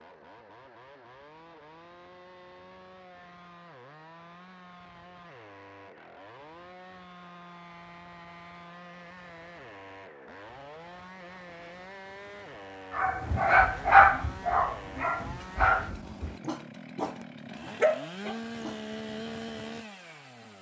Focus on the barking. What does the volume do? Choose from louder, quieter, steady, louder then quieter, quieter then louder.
quieter then louder.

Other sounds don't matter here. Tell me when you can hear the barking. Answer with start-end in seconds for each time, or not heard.
12.9-18.8.